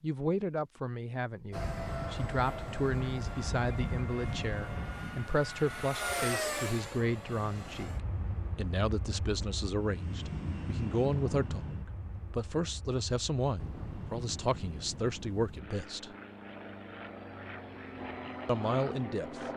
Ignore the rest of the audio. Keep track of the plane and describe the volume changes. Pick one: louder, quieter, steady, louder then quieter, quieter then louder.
quieter then louder.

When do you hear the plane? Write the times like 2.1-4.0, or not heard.
1.5-19.5.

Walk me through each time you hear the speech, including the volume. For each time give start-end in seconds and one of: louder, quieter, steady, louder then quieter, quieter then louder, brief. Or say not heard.
0.0-16.1 steady
18.4-19.4 brief.